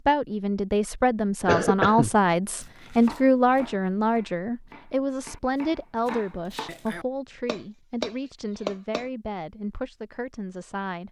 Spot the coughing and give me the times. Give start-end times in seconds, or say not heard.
1.4-2.1.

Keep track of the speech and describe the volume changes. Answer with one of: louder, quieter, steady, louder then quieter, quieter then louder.
quieter.